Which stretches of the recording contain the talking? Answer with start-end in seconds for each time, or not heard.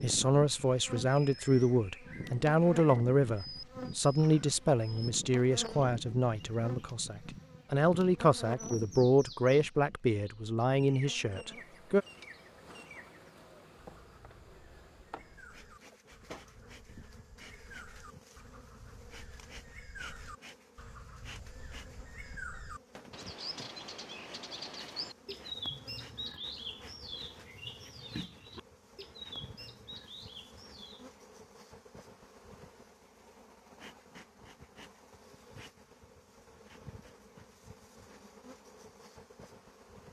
0.0-12.1.